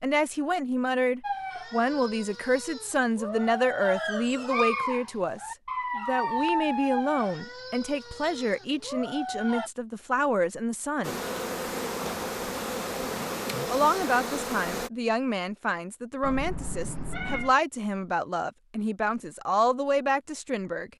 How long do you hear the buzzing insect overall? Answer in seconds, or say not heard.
4 s.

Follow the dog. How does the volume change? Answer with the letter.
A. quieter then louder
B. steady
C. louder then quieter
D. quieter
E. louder
C.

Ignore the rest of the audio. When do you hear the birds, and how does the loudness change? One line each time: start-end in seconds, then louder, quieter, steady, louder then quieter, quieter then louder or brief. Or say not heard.
not heard.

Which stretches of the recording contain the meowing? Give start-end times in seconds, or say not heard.
16.2-17.6.